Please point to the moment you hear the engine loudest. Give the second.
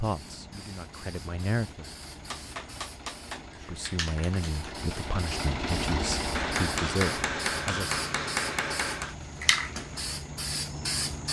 6 s.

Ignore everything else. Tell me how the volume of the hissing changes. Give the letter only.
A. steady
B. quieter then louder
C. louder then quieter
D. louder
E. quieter
D.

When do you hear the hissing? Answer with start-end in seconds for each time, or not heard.
0.0-11.2.